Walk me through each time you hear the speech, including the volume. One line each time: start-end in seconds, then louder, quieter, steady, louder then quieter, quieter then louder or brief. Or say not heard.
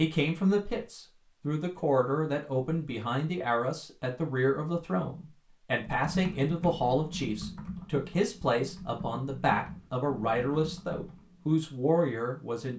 0.0-12.7 steady.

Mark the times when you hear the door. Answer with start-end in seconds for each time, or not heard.
not heard.